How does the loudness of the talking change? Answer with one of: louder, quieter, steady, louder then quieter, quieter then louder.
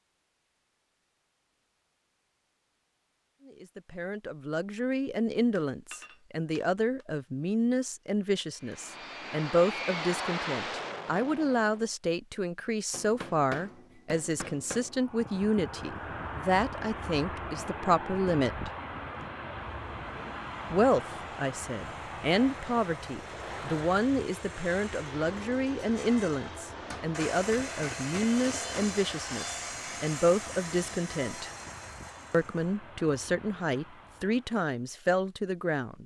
steady.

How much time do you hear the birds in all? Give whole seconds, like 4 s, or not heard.
not heard.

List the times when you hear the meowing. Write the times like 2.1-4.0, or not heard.
not heard.